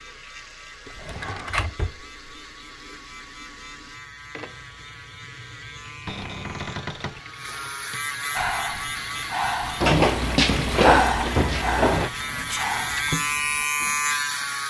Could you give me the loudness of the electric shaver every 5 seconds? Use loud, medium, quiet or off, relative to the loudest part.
quiet, medium, loud.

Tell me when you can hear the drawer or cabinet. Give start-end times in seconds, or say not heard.
0.8-1.9, 6.0-7.2, 9.8-12.1.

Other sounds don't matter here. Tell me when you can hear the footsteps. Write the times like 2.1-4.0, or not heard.
not heard.